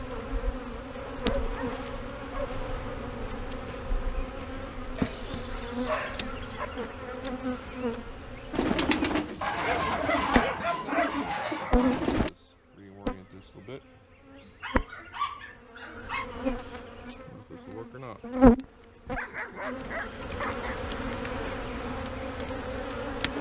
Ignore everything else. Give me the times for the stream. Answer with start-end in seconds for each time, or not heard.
not heard.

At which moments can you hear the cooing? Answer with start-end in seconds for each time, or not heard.
8.5-12.3.